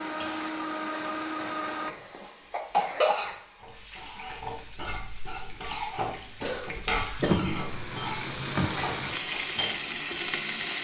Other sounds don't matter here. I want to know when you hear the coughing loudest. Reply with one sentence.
The loudest moment of the coughing is at 3 seconds.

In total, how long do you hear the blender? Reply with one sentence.
The blender can be heard for 2 seconds in total.